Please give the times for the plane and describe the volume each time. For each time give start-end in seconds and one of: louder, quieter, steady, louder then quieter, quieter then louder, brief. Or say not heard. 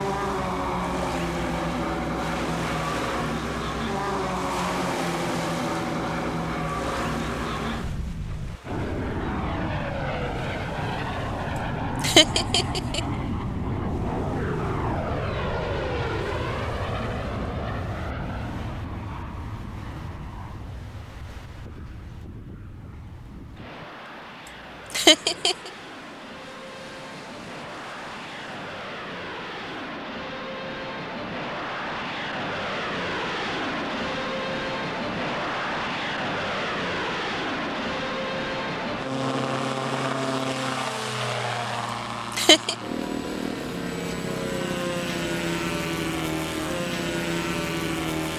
0.0-48.3 quieter then louder.